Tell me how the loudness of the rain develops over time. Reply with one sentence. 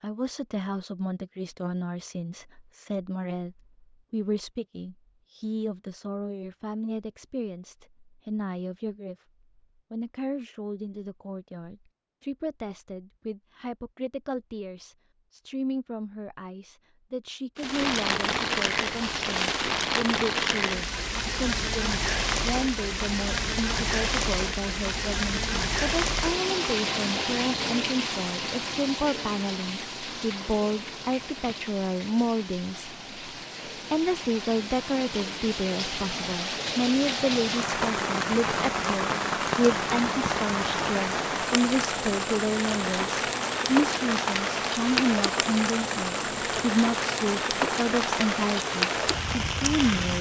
The loudness of the rain goes down, then up.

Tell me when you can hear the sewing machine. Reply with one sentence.
The sewing machine can't be heard in this clip.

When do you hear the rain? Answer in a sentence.
The rain can be heard from 17.6 to 50.1 s.